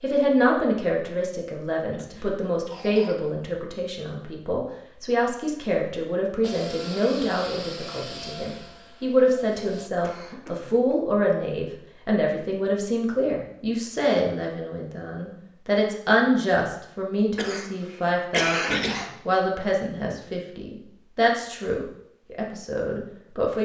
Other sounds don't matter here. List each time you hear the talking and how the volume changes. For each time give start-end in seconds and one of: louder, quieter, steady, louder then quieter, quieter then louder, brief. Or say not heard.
0.0-23.6 steady.